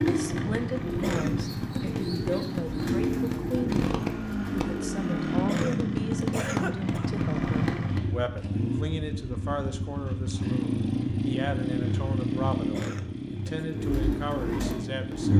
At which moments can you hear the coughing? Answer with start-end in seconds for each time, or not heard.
0.9-1.9, 5.4-7.0, 12.7-13.7.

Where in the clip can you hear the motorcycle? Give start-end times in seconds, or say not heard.
0.0-15.3.